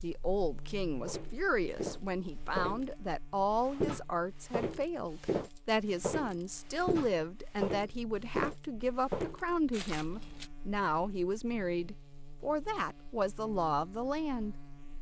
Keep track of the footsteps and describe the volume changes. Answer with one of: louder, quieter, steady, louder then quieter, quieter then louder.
steady.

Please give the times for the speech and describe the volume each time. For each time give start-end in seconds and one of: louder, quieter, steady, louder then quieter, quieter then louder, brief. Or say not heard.
0.0-14.6 steady.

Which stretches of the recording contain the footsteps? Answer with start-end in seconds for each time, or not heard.
1.1-10.5.